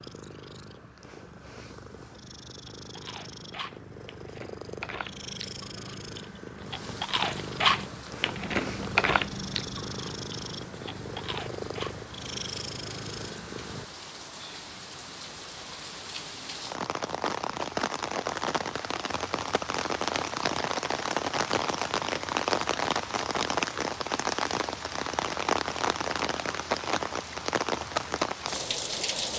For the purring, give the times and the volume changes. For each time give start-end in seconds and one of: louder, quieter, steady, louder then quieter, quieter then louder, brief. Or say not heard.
0.0-13.9 louder.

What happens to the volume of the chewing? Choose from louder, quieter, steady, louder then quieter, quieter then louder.
louder then quieter.